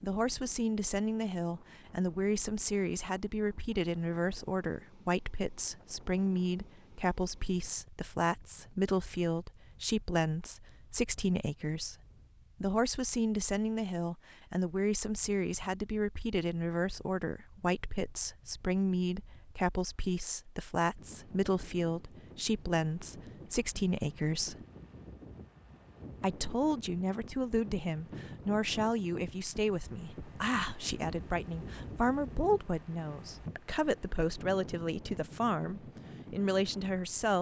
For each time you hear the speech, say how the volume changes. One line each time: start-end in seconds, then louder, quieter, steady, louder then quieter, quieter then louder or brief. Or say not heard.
0.0-11.9 steady
12.6-24.6 steady
26.2-37.3 steady.